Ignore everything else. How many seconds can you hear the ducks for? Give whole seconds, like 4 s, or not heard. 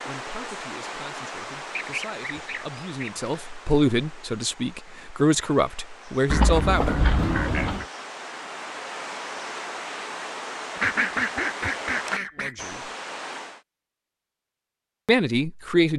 5 s.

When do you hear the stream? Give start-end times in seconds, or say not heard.
0.0-13.7.